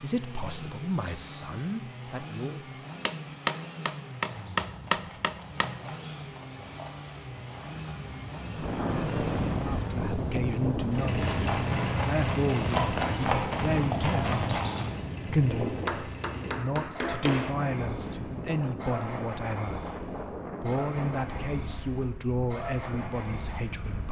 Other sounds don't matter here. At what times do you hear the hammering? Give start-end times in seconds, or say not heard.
3.0-5.8, 15.8-17.6.